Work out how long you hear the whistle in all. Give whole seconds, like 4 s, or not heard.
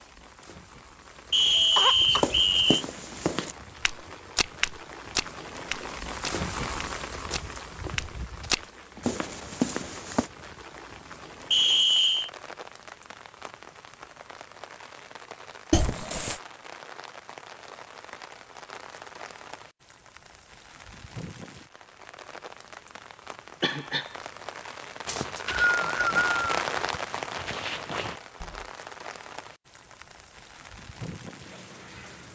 4 s.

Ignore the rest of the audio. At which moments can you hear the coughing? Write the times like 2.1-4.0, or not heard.
1.6-2.4, 15.7-16.4, 23.6-24.1.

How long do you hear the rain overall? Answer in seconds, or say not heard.
32 s.